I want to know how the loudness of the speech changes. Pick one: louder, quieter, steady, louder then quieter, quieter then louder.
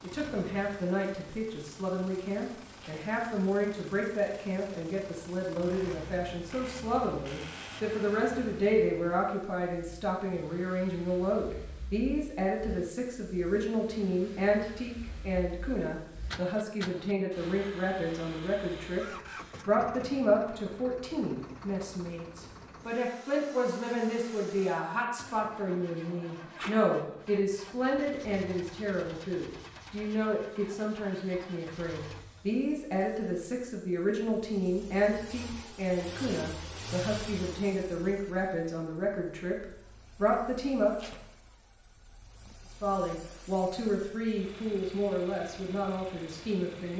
steady.